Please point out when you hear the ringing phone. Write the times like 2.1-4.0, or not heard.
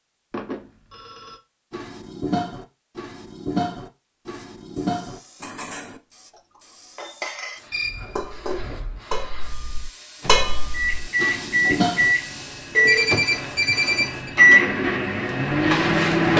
0.3-1.4, 7.7-9.0, 12.8-14.3.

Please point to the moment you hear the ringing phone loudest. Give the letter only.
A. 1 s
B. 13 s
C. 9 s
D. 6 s
B.